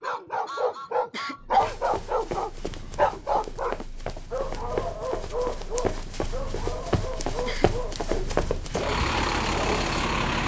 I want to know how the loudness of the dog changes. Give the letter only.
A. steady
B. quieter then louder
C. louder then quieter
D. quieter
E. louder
D.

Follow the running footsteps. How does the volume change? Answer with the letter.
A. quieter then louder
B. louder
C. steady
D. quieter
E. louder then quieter
B.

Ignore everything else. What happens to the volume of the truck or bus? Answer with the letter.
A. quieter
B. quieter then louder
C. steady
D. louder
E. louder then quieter
B.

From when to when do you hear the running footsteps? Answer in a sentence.
You can hear the running footsteps from 1.6 to 8.8 s.